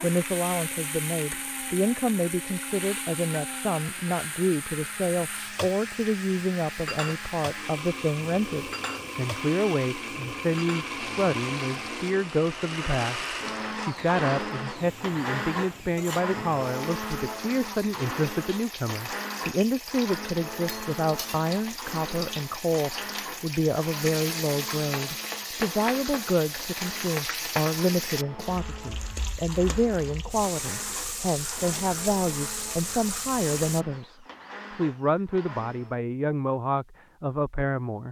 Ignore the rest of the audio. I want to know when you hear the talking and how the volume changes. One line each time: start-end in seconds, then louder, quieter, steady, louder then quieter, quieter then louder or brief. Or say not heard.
0.0-38.0 steady.